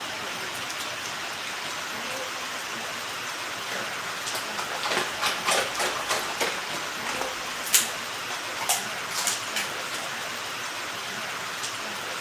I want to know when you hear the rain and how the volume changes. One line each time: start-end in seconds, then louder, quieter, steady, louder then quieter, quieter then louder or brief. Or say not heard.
0.0-12.1 steady.